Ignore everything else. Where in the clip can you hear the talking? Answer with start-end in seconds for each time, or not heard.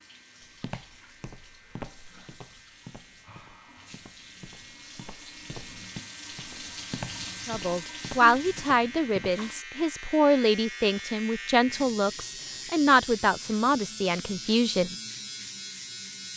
7.5-14.9.